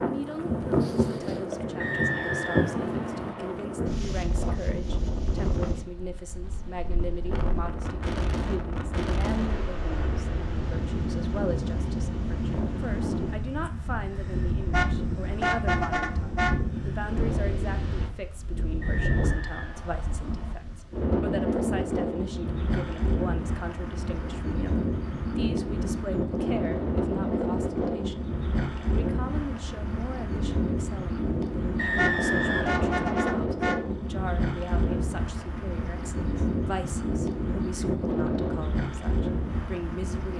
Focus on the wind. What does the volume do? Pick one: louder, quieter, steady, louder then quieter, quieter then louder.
steady.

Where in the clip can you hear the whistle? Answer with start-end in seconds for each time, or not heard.
1.8-3.5, 18.8-20.6, 31.8-33.4.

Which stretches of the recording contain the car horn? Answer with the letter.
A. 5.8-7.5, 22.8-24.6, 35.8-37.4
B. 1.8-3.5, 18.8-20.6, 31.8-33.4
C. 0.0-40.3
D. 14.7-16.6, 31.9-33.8
D.